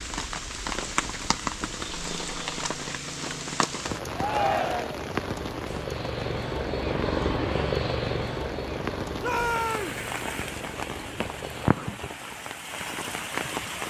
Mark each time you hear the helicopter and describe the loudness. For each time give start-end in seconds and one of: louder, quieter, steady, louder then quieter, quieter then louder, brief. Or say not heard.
0.0-11.8 louder then quieter.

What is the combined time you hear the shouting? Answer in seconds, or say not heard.
2 s.